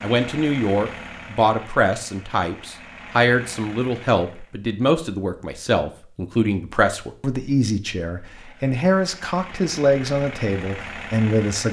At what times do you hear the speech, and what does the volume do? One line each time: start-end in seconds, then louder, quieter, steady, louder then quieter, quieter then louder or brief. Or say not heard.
0.0-11.6 steady.